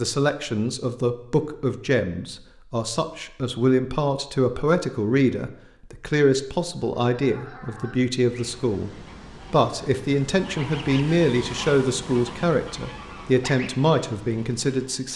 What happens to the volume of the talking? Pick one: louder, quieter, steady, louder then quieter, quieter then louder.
steady.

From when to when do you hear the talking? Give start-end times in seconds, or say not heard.
0.0-8.9, 9.5-15.1.